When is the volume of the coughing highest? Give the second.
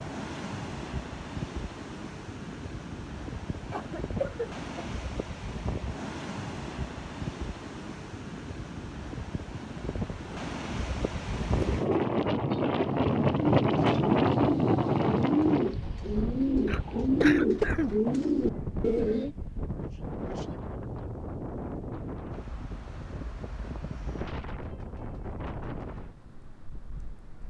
18 s.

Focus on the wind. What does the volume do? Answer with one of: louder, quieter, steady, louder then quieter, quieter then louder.
louder then quieter.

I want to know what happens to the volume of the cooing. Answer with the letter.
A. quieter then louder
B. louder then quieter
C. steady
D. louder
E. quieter
D.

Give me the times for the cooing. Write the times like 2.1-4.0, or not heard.
11.5-19.4.